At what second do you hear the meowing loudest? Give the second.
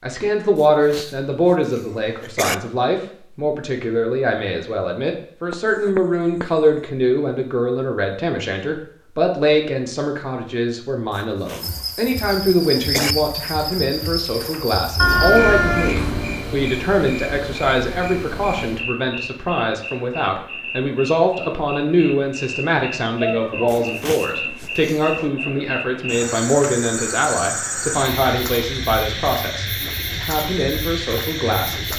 15 s.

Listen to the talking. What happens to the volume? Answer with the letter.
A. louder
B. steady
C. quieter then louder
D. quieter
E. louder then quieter
B.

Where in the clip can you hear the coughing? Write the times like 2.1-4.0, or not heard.
0.6-2.5, 11.1-13.2, 23.6-25.3.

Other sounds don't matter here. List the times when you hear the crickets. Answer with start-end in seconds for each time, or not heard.
11.6-31.9.